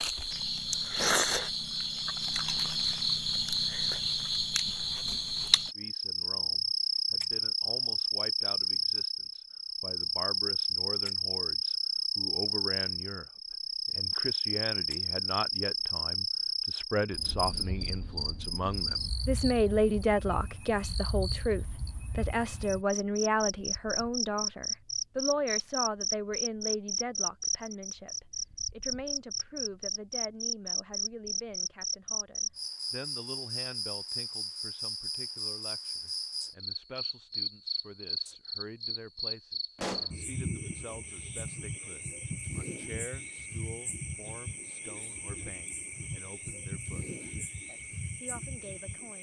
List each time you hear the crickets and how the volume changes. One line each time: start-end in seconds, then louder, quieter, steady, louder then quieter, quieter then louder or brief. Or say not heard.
0.0-49.1 quieter.